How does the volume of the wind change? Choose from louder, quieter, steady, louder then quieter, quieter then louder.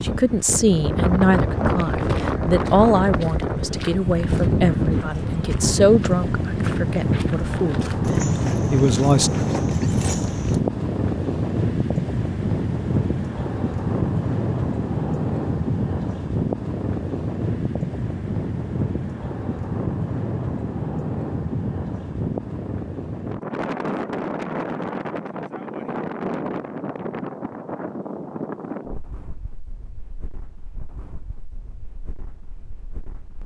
quieter.